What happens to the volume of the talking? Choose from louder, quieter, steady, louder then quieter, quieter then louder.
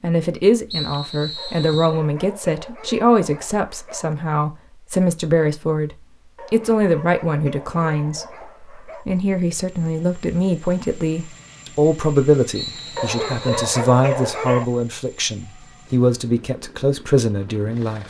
steady.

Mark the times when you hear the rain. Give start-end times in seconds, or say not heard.
not heard.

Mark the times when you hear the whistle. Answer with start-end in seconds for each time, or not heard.
0.7-2.0, 12.6-13.7.